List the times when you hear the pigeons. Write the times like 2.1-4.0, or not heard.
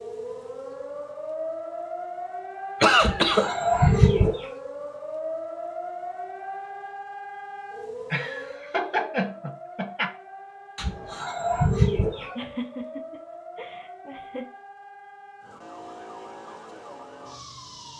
3.0-4.5, 10.8-12.3.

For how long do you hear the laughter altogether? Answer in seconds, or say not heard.
5 s.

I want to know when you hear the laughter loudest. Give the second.
3 s.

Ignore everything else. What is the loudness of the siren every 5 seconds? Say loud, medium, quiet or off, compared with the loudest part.
loud, loud, medium, medium.